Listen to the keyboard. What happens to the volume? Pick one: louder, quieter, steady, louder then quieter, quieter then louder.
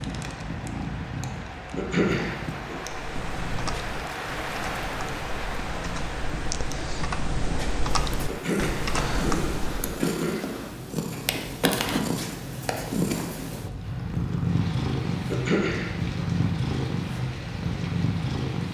louder.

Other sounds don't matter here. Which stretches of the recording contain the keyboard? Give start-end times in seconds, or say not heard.
2.8-10.0.